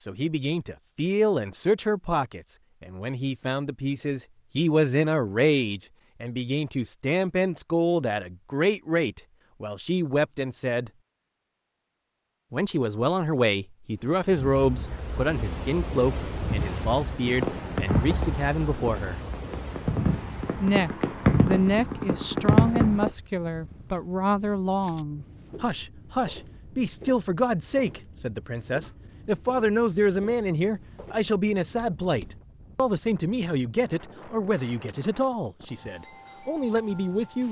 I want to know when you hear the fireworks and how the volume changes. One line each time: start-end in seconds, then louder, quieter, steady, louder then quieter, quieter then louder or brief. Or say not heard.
17.2-23.1 quieter then louder.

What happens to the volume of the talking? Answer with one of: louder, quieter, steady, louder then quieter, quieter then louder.
steady.